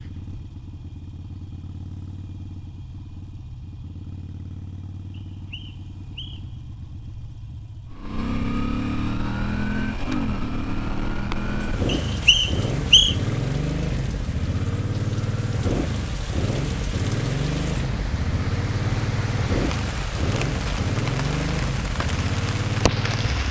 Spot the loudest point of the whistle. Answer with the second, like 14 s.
13 s.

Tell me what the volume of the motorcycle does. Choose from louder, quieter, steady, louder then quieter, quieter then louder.
louder.